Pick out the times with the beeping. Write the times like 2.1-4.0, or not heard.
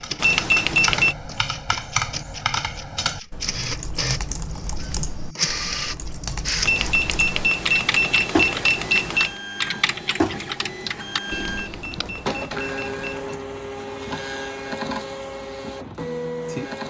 0.2-1.1, 6.6-9.4, 11.2-13.3.